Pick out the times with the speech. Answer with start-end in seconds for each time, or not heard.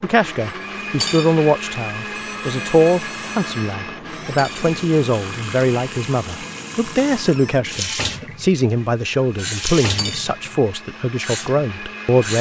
0.0-12.3.